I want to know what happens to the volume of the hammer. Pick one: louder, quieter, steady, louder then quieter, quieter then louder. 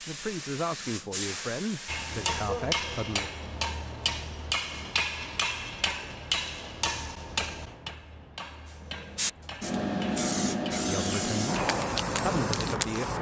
quieter.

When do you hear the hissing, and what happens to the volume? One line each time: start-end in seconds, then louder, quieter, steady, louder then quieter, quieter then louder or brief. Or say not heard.
0.0-2.4 brief
8.7-13.1 steady.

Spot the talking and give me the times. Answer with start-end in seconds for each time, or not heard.
0.1-3.3, 10.8-13.1.